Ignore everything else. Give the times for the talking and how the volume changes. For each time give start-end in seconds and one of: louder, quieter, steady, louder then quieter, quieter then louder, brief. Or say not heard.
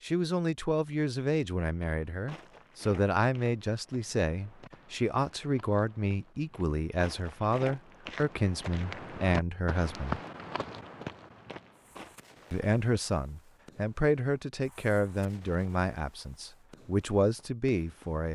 0.0-10.2 steady
12.5-18.3 quieter then louder.